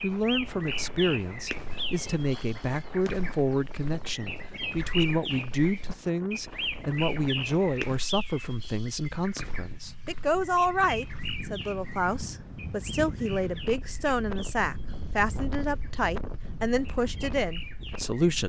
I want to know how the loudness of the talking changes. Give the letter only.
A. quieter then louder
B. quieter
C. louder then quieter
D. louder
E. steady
E.